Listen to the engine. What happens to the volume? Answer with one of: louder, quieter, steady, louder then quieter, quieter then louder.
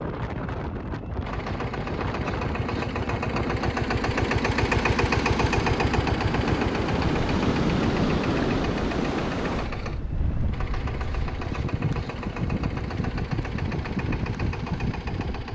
louder then quieter.